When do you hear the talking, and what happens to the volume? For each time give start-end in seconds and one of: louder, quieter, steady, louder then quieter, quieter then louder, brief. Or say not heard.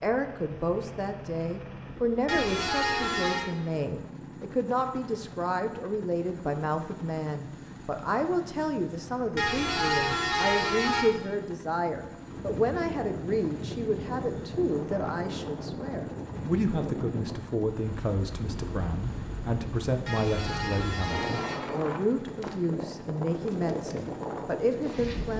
0.0-25.3 steady.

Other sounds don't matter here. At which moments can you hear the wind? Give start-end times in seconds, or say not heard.
12.2-25.3.